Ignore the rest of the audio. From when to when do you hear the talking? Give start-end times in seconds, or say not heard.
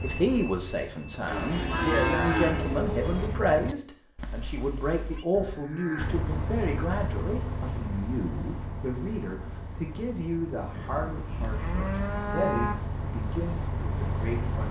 0.0-14.6.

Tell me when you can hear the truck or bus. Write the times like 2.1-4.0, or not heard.
0.0-3.8, 6.0-14.6.